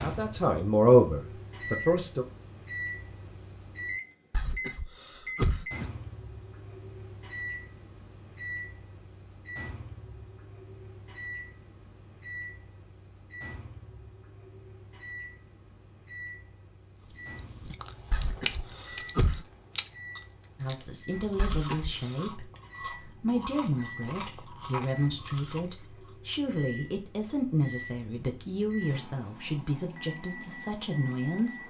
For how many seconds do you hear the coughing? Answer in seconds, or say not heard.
4 s.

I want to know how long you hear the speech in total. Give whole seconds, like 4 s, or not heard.
13 s.